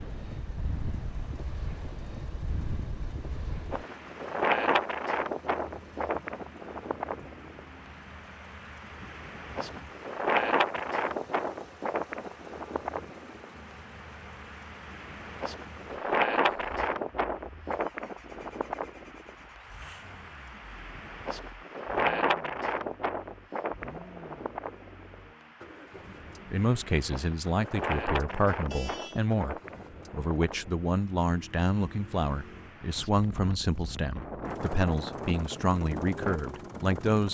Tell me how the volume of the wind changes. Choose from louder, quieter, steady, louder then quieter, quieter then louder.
quieter.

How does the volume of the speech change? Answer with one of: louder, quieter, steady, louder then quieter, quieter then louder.
steady.